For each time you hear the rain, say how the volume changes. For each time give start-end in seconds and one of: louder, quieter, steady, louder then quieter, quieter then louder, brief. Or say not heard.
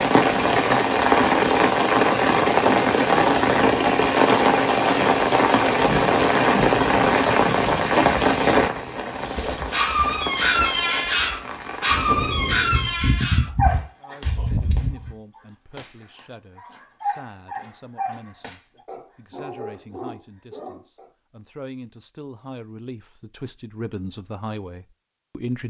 0.0-13.1 quieter.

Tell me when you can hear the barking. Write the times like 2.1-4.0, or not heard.
9.3-21.1.